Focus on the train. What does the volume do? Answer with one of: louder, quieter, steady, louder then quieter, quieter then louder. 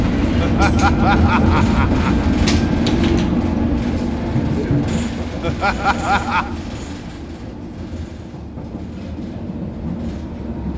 quieter.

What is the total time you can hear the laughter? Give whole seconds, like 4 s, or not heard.
3 s.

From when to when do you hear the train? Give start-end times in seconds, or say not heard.
0.0-10.7.